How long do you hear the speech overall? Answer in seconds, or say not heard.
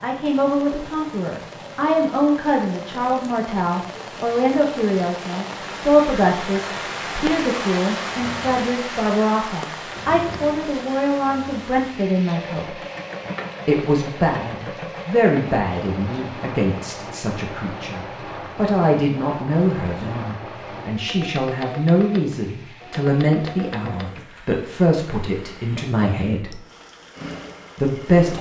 26 s.